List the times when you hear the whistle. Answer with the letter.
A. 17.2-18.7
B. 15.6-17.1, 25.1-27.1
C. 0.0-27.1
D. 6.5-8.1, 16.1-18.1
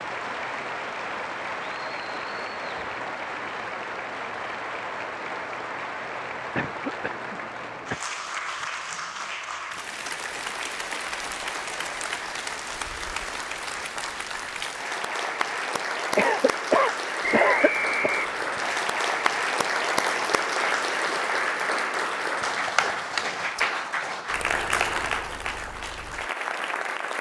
A.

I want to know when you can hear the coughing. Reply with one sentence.
You can hear the coughing from 6.5 to 8.1 s and from 16.1 to 18.1 s.